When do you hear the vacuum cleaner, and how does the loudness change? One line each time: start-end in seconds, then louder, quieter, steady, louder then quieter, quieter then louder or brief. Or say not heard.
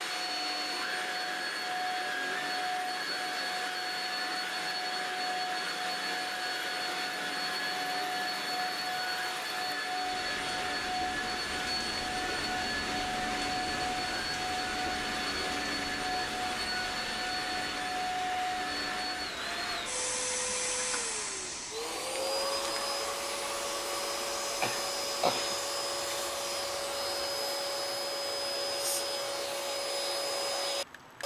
0.0-31.2 steady.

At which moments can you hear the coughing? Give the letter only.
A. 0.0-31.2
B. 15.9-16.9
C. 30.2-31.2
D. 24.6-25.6
D.